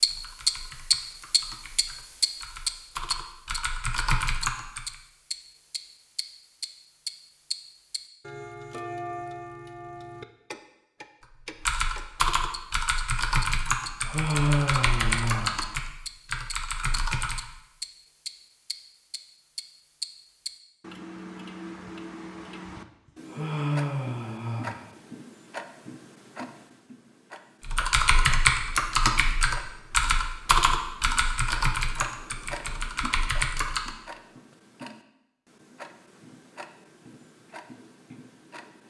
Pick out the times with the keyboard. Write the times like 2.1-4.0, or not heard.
0.0-5.0, 11.4-17.4, 27.6-34.0.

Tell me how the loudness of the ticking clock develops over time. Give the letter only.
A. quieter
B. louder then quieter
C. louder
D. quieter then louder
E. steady
A.